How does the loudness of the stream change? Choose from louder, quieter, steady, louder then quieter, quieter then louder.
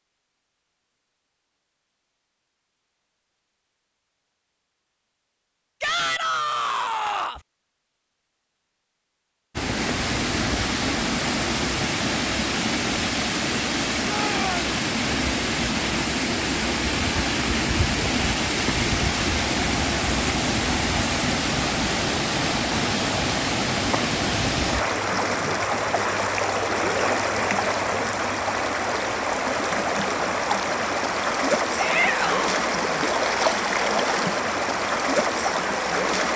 steady.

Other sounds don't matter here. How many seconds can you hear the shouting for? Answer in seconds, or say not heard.
3 s.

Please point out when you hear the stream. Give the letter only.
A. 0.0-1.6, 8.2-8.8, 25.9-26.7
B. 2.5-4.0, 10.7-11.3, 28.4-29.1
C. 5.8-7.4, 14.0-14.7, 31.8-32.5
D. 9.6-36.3
D.